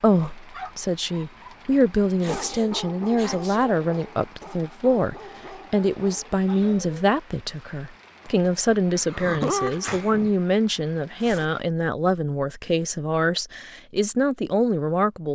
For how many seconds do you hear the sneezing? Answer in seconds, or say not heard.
3 s.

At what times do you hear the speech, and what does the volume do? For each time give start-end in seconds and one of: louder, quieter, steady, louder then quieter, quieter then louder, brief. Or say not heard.
0.0-15.3 steady.